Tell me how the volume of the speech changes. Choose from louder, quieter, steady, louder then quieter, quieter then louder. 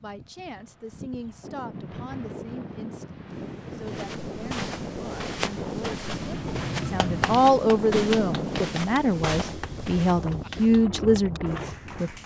louder.